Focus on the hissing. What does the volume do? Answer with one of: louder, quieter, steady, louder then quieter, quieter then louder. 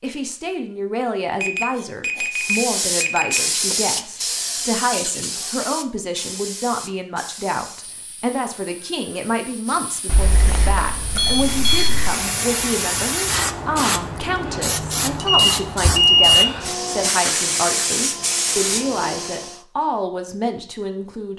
quieter then louder.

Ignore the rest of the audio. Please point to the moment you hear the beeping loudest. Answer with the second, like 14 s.
16 s.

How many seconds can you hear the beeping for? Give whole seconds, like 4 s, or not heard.
5 s.